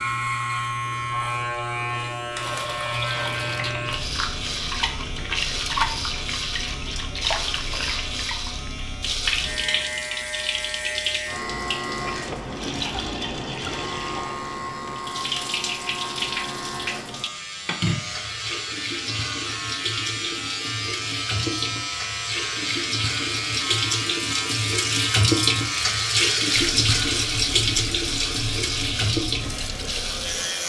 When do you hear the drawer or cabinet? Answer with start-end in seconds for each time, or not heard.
not heard.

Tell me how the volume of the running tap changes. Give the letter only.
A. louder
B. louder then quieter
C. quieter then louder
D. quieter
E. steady
A.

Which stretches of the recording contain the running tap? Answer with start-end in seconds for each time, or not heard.
2.4-30.6.